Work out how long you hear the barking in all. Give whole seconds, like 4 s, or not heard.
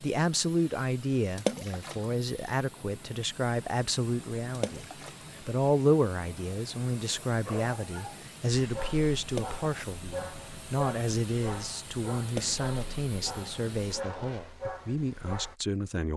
8 s.